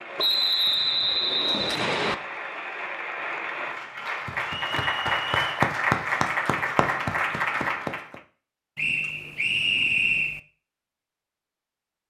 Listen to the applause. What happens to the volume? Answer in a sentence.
The loudness of the applause goes up.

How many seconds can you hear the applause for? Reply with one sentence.
The applause can be heard for 8 seconds in total.